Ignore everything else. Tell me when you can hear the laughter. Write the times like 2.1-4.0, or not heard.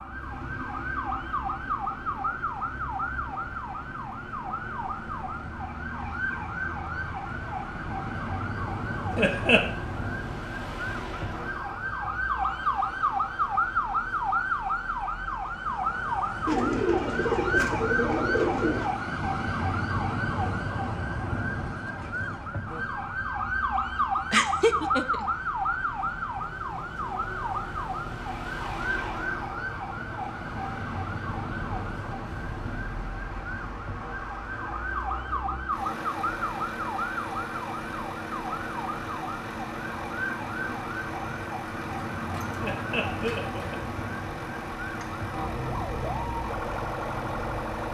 9.2-9.7, 24.3-25.3, 42.6-43.8.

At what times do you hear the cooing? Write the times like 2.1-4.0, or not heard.
16.4-18.9.